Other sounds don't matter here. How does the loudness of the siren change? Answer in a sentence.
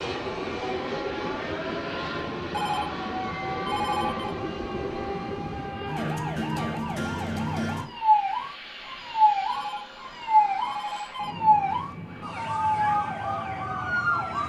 The volume of the siren goes up.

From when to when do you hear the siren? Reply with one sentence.
You can hear the siren from 0.1 to 14.4 s.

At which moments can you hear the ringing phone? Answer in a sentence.
You can hear the ringing phone from 2.5 to 4.3 s and from 9.4 to 11.3 s.